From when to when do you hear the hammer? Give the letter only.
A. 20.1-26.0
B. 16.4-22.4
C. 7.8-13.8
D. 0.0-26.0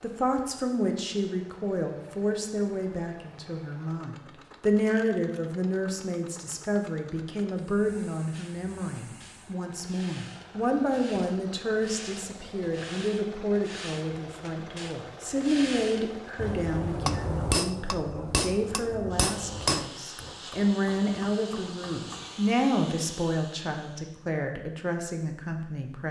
B.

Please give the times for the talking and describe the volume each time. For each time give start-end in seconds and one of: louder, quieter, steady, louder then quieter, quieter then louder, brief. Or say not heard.
0.0-26.0 steady.